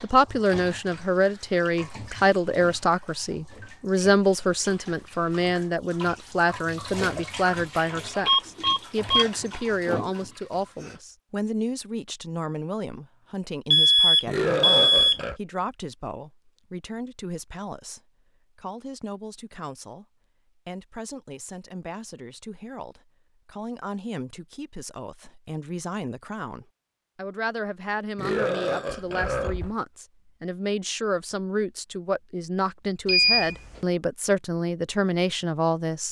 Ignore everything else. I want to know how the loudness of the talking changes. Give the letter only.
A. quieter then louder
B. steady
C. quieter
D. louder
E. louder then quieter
A.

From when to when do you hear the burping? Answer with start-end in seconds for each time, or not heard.
14.2-15.4, 28.1-29.8.